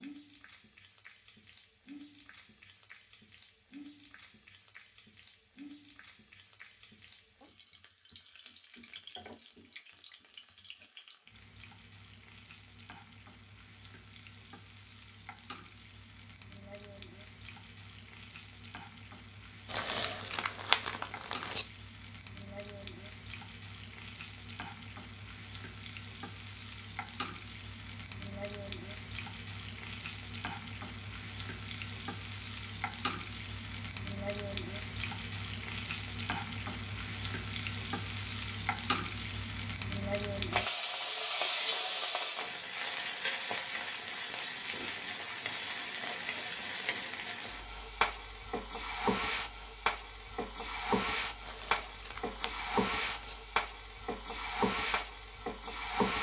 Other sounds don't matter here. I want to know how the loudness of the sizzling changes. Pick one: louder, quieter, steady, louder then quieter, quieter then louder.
louder.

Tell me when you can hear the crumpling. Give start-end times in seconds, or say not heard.
19.6-21.6, 51.4-53.4.